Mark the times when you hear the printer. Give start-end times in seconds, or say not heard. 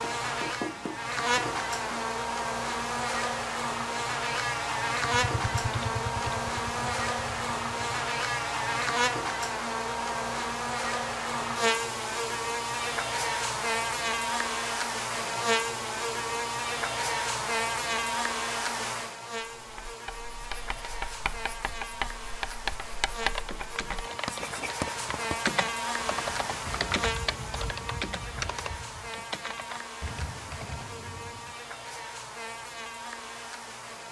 not heard.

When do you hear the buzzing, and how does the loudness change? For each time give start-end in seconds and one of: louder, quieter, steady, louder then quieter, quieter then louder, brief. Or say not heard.
0.0-34.0 quieter.